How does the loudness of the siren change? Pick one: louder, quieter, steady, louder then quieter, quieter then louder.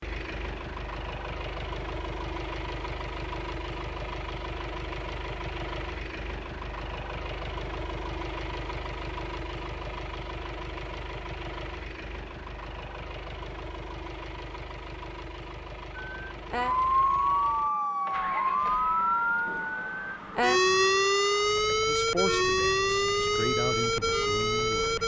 steady.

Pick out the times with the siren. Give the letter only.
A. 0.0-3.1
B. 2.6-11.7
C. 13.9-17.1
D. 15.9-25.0
D.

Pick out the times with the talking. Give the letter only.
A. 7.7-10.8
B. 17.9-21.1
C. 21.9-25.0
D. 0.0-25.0
C.